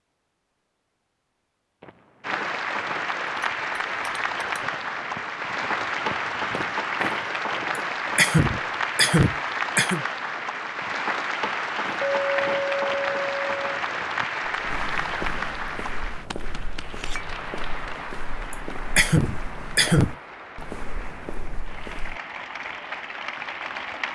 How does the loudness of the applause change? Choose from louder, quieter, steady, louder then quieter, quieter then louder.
quieter.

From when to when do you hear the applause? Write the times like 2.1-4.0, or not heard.
2.2-24.0.